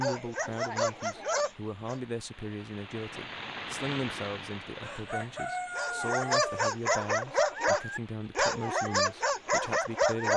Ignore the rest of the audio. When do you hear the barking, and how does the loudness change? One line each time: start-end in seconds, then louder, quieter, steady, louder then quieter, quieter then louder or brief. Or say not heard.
0.0-2.0 brief
5.8-10.3 steady.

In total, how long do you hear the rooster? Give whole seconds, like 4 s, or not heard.
2 s.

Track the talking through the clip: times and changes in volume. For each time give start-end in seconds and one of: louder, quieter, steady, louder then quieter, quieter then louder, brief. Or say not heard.
0.0-10.3 steady.